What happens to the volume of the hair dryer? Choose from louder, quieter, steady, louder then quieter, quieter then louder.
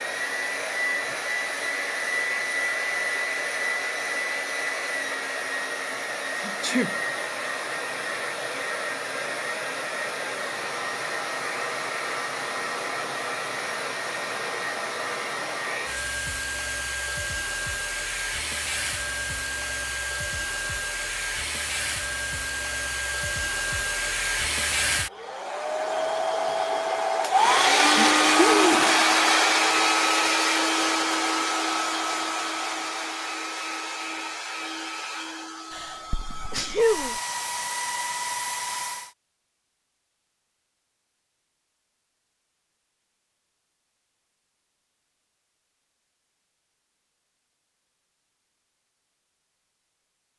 louder then quieter.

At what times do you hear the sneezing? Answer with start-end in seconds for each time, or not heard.
6.3-7.0, 27.9-29.1, 35.7-37.1.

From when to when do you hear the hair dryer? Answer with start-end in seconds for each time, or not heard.
0.0-39.1.